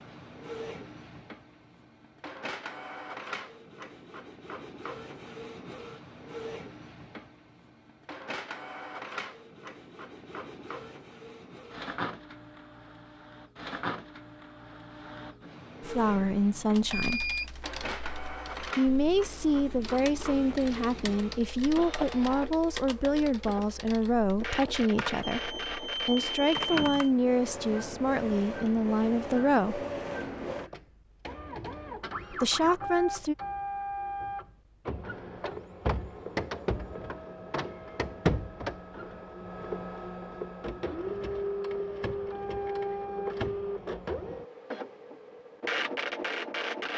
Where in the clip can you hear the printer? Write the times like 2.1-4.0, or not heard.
0.0-46.9.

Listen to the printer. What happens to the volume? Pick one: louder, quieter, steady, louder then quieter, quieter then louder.
louder.